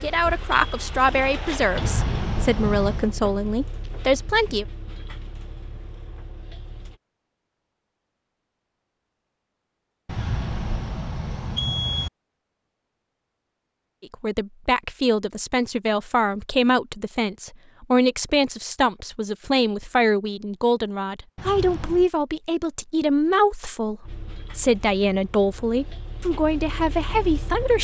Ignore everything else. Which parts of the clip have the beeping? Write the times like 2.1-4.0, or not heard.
1.8-3.1, 10.1-12.1, 21.4-22.1.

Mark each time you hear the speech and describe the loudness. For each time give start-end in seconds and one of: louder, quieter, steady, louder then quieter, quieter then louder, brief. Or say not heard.
0.0-4.7 steady
14.0-27.7 steady.